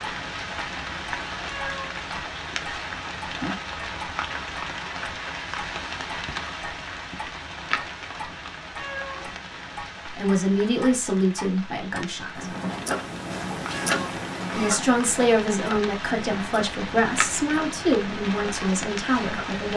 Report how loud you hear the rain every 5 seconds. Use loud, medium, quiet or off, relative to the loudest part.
loud, loud, medium, loud.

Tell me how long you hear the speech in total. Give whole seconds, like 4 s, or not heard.
8 s.